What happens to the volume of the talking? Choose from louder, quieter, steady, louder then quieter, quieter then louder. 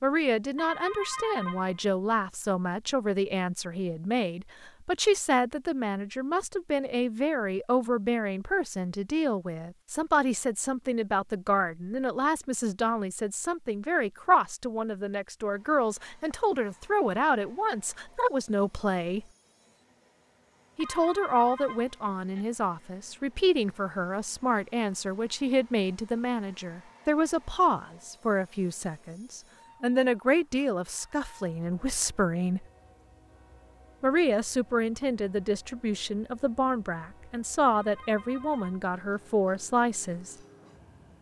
steady.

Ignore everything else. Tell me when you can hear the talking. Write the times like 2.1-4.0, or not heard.
0.0-19.2, 20.8-32.6, 34.0-40.4.